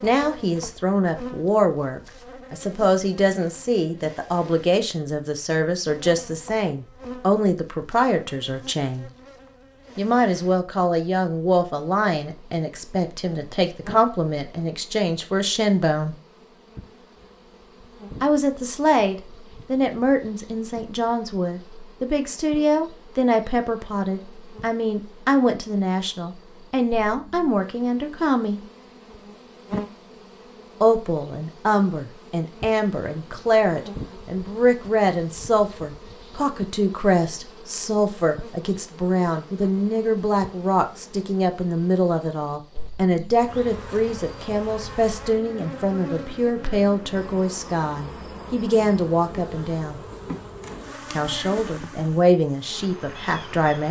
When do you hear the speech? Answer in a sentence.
The speech can be heard from 0.0 to 9.1 s, from 9.9 to 16.1 s, from 18.2 to 28.6 s, from 30.8 to 50.0 s and from 51.1 to 53.8 s.